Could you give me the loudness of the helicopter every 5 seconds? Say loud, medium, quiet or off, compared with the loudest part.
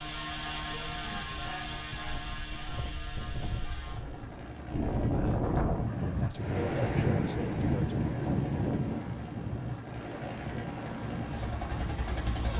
loud, medium, loud.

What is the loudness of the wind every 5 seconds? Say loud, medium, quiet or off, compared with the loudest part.
medium, loud, medium.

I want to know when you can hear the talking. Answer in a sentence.
The talking can be heard from 5.0 to 8.2 s.